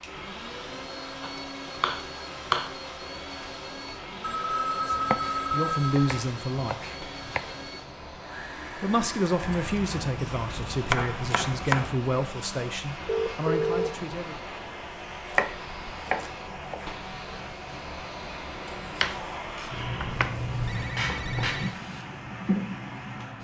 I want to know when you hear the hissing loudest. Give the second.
21 s.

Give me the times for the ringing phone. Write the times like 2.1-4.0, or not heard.
4.2-6.0, 13.1-13.9, 20.1-21.8.